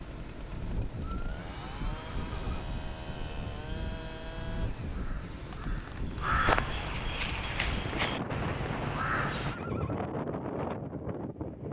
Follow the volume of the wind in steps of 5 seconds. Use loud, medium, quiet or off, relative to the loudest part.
medium, loud, loud.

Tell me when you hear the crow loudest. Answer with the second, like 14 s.
6 s.